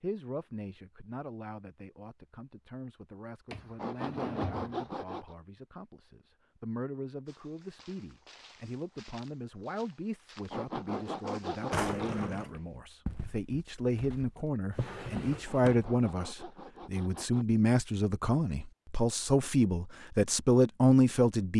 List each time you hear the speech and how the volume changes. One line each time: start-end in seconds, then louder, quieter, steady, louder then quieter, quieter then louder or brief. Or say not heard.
0.0-21.5 louder.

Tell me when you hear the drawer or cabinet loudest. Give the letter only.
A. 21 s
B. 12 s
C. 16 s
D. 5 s
B.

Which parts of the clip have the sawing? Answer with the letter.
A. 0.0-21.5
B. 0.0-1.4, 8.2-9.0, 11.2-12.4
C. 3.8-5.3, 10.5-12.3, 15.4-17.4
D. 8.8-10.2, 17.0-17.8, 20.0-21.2
C.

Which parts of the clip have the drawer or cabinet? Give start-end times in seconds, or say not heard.
3.5-5.0, 11.7-12.5, 14.7-15.9.